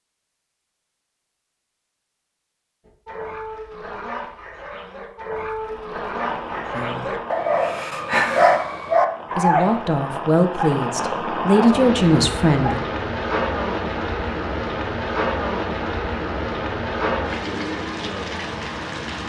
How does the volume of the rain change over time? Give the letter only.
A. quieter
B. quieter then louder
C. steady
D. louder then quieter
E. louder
E.